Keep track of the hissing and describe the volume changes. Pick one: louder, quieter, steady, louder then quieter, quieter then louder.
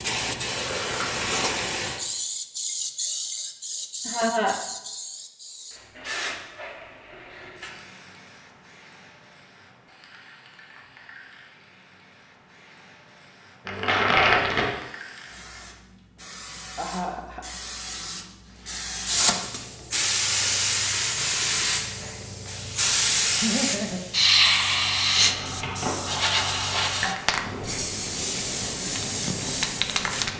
quieter then louder.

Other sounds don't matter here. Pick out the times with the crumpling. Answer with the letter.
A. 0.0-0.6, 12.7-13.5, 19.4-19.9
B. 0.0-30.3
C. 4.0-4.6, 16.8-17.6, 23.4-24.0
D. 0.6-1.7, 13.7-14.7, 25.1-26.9
D.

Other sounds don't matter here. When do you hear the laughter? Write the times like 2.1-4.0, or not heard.
4.0-4.6, 16.8-17.6, 23.4-24.0.